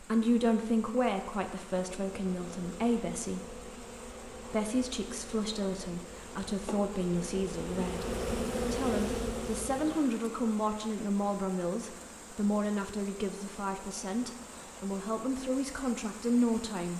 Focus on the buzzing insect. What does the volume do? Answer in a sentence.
The loudness of the buzzing insect goes up.